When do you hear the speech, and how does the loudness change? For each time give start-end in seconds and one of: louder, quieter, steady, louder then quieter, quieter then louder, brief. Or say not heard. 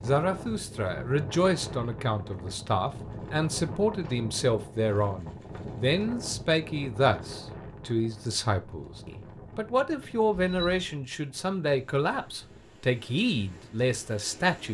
0.0-14.7 steady.